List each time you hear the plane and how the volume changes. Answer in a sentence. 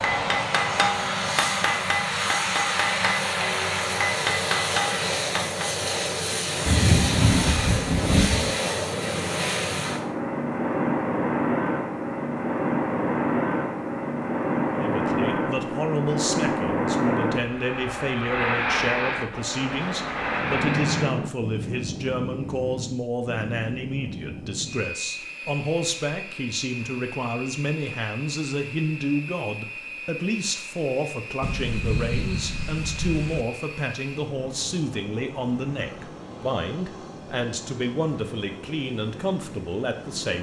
You can hear the plane from 0.0 to 40.3 s, getting quieter.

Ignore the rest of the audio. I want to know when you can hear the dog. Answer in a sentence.
The dog can't be heard in this clip.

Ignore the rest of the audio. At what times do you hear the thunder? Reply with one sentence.
The thunder can be heard from 6.7 to 8.6 s, from 19.3 to 21.3 s and from 31.4 to 33.5 s.